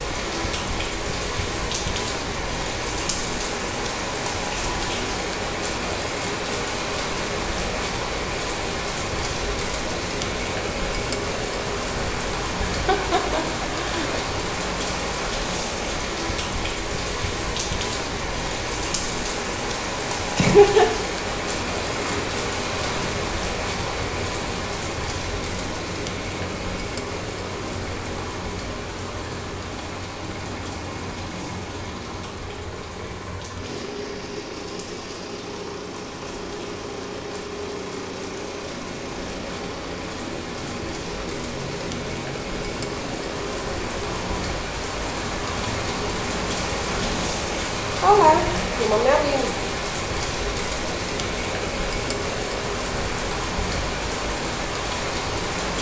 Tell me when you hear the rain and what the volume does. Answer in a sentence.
You can hear the rain from 0.0 to 55.7 s, getting quieter then louder.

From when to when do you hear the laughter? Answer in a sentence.
You can hear the laughter from 12.7 to 14.2 s, from 20.4 to 20.9 s and from 47.8 to 49.6 s.